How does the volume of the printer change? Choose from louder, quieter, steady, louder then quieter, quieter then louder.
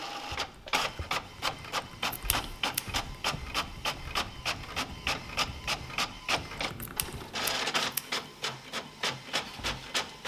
steady.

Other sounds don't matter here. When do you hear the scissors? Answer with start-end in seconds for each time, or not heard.
2.1-2.9, 6.8-8.4.